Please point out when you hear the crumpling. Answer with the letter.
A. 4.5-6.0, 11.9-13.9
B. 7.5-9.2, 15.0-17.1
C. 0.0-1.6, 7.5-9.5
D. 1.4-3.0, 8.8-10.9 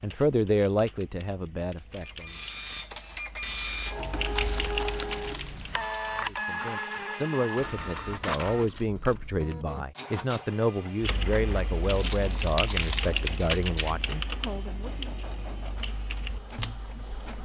A.